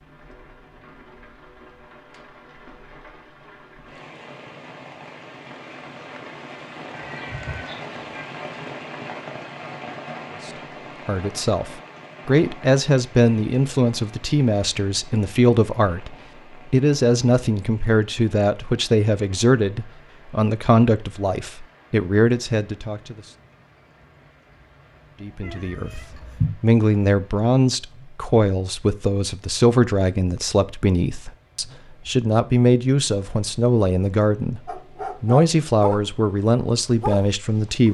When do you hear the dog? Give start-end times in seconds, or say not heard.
34.6-36.0, 36.6-37.8.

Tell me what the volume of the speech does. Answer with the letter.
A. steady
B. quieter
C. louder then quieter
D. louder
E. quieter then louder
A.